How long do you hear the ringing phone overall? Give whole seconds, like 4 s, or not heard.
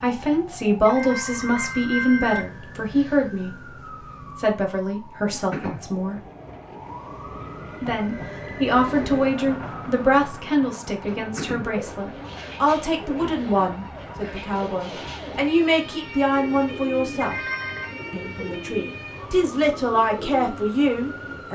2 s.